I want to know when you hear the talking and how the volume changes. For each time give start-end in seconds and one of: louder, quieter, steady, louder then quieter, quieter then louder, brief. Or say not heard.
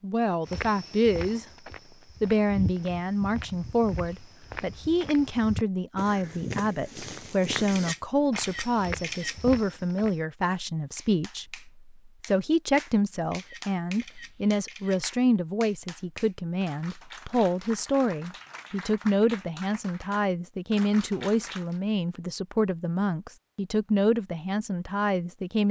0.0-1.4 brief
2.2-25.6 steady.